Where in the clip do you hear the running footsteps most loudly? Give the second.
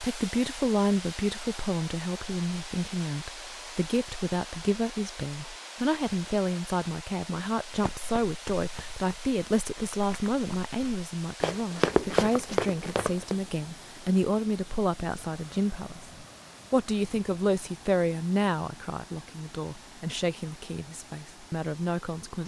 12 s.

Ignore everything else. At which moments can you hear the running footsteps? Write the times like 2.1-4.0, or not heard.
7.7-13.3.